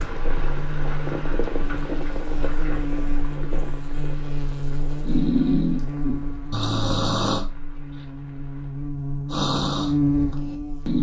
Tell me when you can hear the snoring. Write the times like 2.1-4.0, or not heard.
5.0-7.5, 9.2-10.9.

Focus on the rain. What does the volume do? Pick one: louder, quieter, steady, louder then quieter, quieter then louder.
quieter.